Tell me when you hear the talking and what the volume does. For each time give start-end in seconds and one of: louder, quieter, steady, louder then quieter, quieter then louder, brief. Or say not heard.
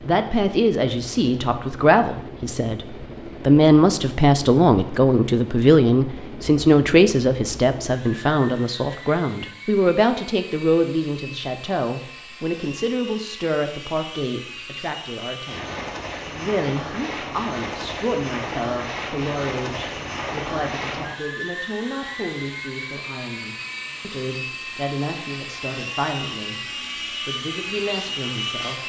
0.0-26.6 quieter
27.2-28.8 brief.